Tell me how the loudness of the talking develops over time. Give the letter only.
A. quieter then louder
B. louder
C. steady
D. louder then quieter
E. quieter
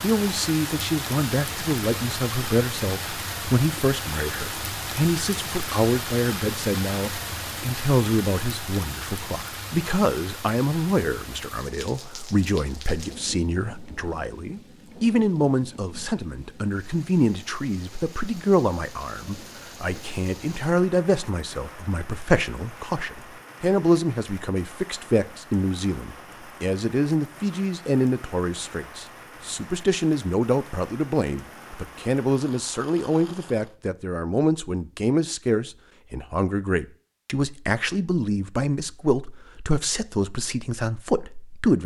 C.